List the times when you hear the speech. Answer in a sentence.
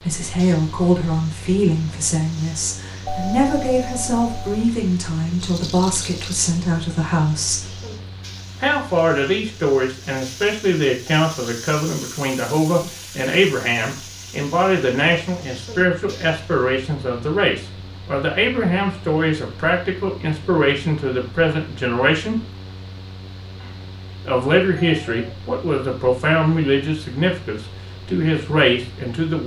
The speech can be heard from 0.0 to 7.8 s, from 8.6 to 22.4 s and from 24.2 to 29.4 s.